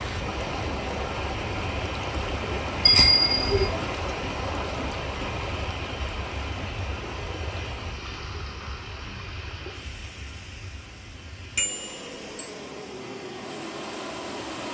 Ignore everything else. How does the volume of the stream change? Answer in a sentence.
The volume of the stream goes down.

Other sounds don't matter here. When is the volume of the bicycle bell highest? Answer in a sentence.
The volume of the bicycle bell peaks at 3 seconds.